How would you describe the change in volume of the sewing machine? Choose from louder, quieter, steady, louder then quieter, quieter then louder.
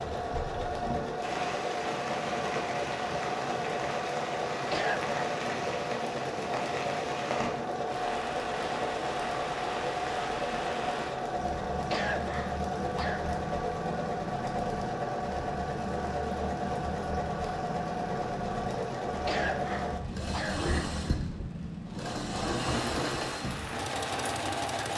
steady.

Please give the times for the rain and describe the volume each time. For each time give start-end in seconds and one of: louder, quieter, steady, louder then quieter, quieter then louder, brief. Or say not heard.
0.0-24.9 steady.